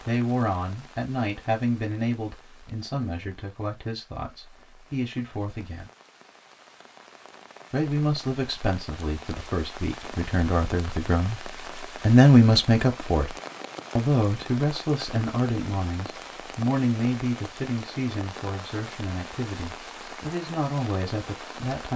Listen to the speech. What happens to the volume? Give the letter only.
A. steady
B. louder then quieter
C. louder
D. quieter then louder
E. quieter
B.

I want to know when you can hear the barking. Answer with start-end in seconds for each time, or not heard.
not heard.